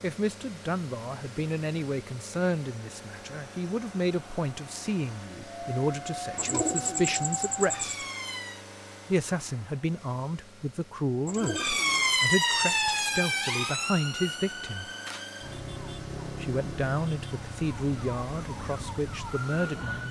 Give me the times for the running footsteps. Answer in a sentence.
The running footsteps can't be heard in this clip.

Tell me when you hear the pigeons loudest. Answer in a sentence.
The volume of the pigeons peaks at 7 seconds.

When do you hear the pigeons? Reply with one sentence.
The pigeons can be heard from 6.3 to 8.1 s and from 11.2 to 13.0 s.